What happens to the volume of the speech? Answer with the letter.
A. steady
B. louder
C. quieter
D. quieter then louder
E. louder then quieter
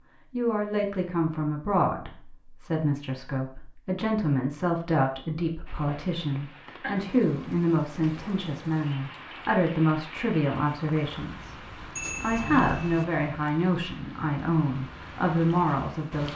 A.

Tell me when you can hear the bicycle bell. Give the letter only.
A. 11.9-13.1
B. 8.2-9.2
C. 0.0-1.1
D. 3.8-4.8
A.